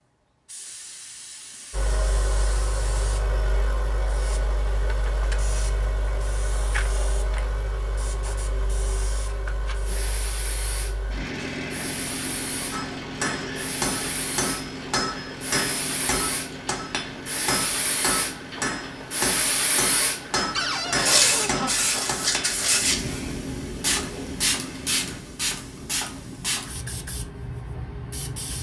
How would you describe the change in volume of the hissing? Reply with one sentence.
The loudness of the hissing goes up.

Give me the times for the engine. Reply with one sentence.
The engine can be heard from 1.7 to 25.2 s.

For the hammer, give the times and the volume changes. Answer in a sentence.
You can hear the hammer from 12.7 to 22.6 s, at a steady volume.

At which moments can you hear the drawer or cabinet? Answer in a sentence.
The drawer or cabinet can be heard from 20.5 to 21.7 s.